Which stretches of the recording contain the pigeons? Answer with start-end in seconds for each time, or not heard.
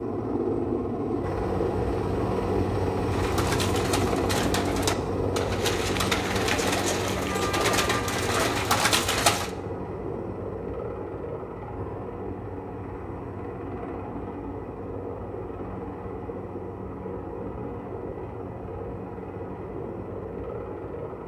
3.1-9.5.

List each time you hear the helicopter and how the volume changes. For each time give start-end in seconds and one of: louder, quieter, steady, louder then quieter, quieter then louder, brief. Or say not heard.
0.0-21.2 quieter.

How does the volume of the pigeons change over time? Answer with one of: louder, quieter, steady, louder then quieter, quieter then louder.
louder.